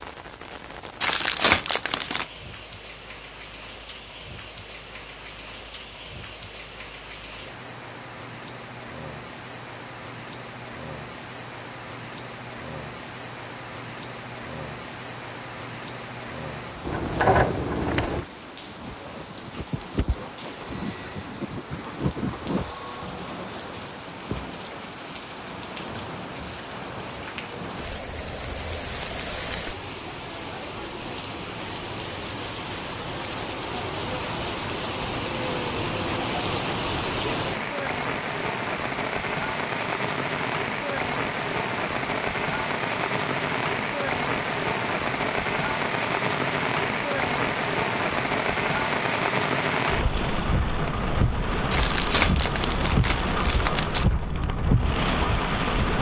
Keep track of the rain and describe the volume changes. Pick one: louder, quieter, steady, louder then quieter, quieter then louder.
louder.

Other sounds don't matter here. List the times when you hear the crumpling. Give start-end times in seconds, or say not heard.
1.0-2.2, 51.7-54.0.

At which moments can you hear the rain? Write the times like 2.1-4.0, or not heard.
0.0-55.9.